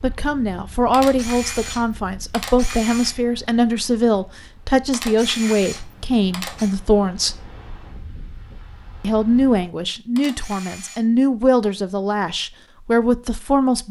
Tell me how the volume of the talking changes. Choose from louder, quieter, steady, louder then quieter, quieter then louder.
steady.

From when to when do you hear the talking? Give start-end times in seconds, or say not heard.
0.0-7.4, 9.0-13.8.